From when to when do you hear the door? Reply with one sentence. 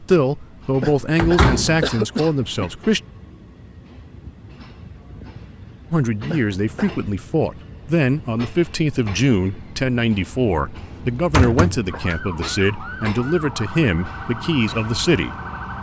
The door can be heard from 1.1 to 1.9 s and from 10.8 to 12.2 s.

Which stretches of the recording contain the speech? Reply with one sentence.
The speech can be heard from 0.0 to 3.0 s and from 5.9 to 15.3 s.